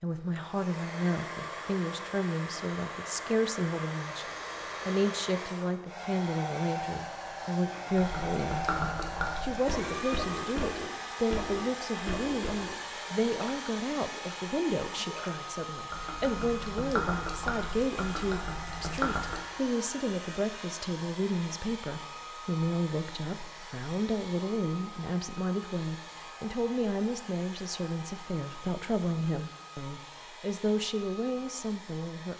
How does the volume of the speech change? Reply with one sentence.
The volume of the speech stays about the same.